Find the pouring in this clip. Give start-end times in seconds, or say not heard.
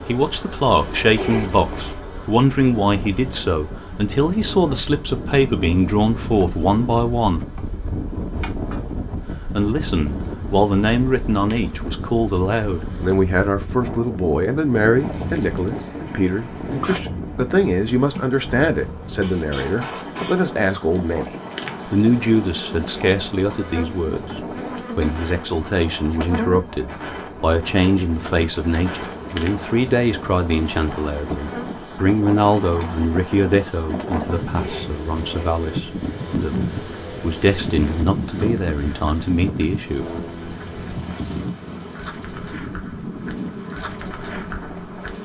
not heard.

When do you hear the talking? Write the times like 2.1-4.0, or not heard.
0.1-7.4, 9.5-40.0.